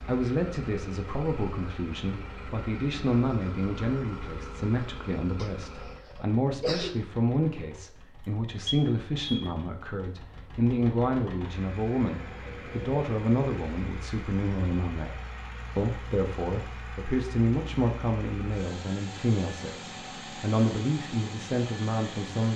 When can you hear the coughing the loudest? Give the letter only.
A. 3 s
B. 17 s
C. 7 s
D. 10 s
C.